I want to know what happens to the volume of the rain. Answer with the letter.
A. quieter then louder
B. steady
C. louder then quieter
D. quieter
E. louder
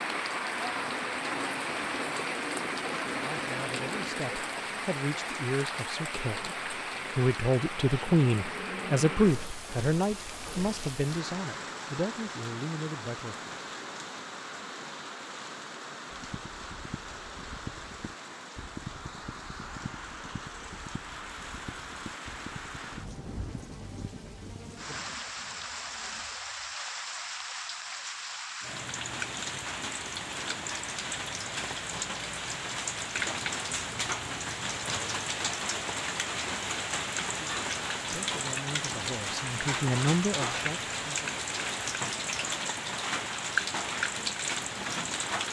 A.